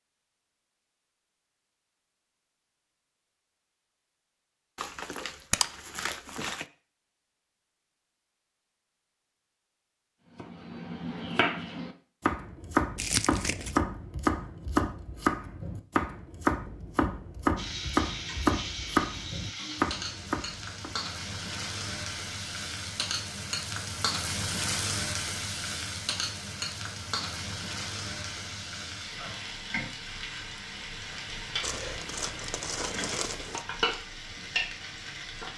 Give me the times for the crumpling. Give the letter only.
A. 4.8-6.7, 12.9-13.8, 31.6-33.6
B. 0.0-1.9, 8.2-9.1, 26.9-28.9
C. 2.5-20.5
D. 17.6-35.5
A.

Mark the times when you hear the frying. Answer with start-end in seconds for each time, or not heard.
17.6-35.5.